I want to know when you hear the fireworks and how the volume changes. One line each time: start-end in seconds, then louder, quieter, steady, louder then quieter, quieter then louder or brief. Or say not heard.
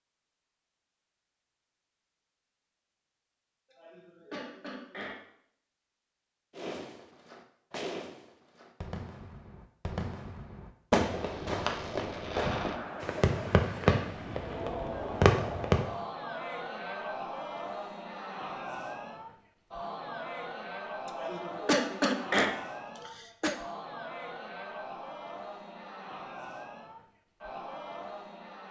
6.5-16.1 louder.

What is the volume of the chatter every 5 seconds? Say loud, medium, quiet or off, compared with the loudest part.
off, off, loud, loud, loud, medium.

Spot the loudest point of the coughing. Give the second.
22 s.